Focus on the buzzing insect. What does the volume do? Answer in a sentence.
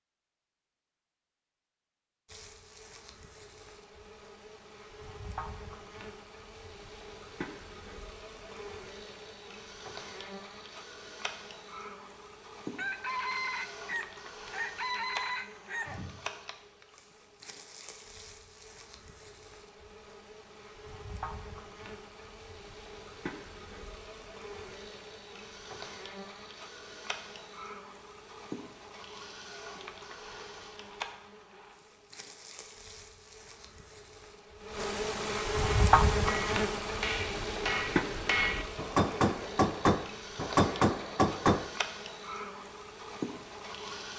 The volume of the buzzing insect goes up.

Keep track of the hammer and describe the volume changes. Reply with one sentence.
The loudness of the hammer goes up.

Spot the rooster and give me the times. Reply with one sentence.
The rooster can be heard from 12.8 to 15.9 s.